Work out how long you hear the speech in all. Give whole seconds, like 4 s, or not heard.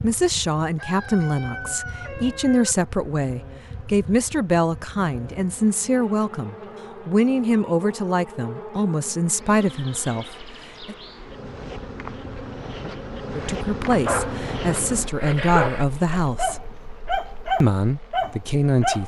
16 s.